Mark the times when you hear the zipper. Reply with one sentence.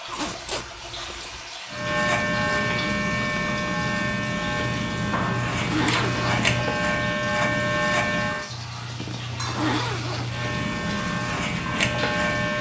You can hear the zipper from 0.1 to 1.5 s, from 4.8 to 6.7 s and from 8.5 to 10.5 s.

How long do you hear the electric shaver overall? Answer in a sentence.
You can hear the electric shaver for 9 seconds altogether.